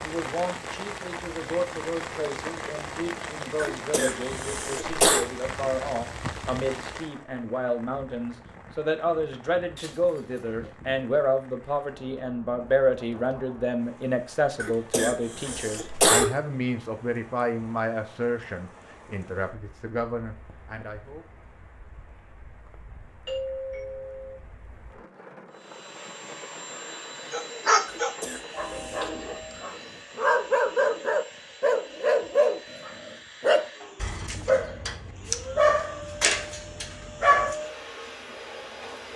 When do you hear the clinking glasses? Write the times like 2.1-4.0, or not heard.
not heard.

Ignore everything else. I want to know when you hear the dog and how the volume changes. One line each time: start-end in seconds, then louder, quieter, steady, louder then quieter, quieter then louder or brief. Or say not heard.
27.3-37.5 steady.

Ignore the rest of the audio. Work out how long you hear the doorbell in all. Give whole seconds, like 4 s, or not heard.
3 s.